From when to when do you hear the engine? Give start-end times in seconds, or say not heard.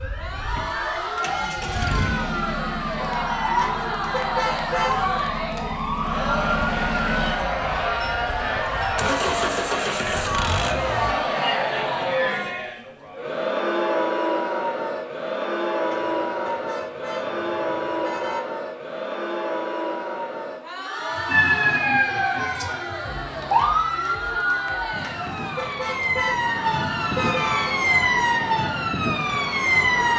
0.0-11.2.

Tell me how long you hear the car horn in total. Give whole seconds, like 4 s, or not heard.
7 s.